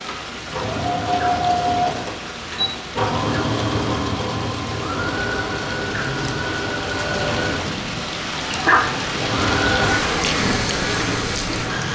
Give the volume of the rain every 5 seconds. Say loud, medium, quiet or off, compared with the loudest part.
medium, loud, loud.